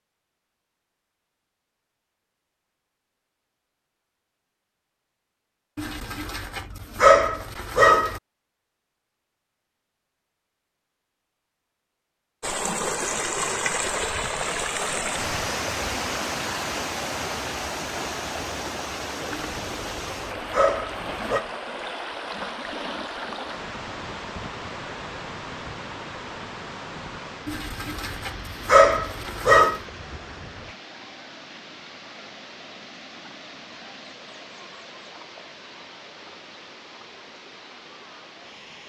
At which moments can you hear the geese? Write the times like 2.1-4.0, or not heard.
not heard.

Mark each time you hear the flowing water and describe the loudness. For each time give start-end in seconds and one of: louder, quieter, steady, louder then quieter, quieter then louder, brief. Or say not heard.
12.4-38.8 quieter.